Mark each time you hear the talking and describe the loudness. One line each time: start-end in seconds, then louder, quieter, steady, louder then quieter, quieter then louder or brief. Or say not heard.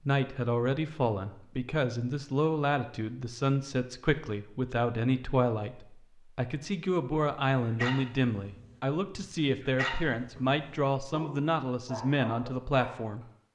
0.1-13.2 steady.